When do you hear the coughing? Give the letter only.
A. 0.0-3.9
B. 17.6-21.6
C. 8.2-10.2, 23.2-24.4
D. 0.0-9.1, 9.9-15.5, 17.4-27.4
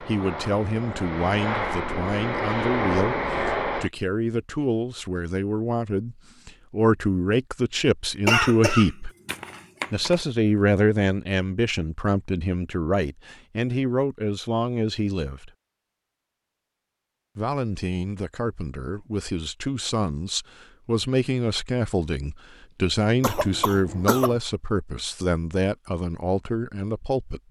C.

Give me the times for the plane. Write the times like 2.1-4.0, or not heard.
0.0-3.9.